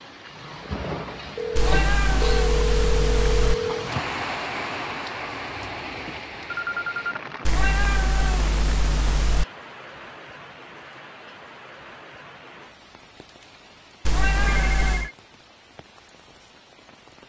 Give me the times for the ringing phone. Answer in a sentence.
You can hear the ringing phone from 1.4 to 3.9 s, from 6.5 to 7.2 s and from 14.3 to 15.2 s.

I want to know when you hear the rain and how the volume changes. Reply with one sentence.
The rain can be heard from 0.0 to 17.2 s, getting quieter.